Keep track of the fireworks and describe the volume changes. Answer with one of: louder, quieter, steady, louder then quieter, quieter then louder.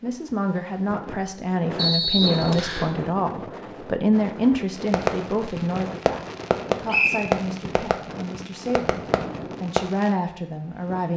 louder then quieter.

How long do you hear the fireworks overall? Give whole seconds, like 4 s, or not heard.
5 s.